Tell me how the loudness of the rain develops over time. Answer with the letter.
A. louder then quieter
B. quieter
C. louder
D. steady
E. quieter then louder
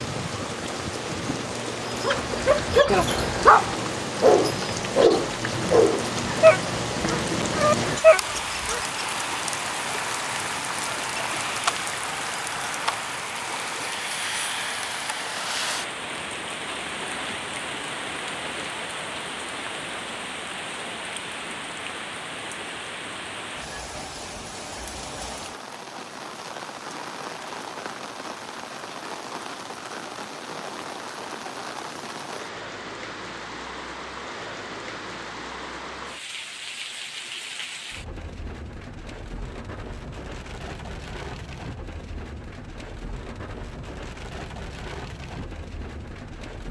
B.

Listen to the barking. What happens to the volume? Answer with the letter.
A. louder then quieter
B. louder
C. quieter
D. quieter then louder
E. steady
E.